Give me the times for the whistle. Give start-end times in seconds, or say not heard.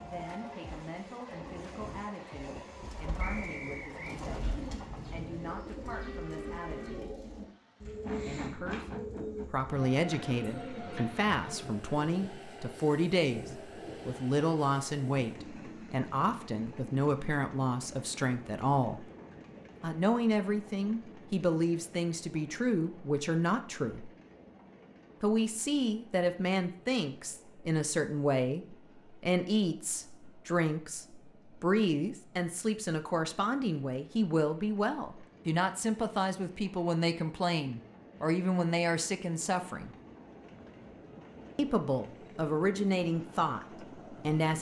3.2-4.2.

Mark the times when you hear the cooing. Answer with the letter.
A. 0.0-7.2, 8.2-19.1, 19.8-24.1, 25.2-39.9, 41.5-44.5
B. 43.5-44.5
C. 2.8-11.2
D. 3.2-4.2
C.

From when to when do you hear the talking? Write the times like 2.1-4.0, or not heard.
0.0-7.2, 8.2-19.1, 19.8-24.1, 25.2-39.9, 41.5-44.5.